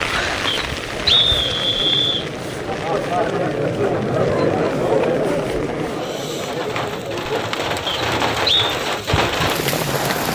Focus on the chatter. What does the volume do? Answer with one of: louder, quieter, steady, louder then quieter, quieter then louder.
louder then quieter.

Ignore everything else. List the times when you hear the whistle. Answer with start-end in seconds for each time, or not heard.
0.5-2.2, 7.8-8.7.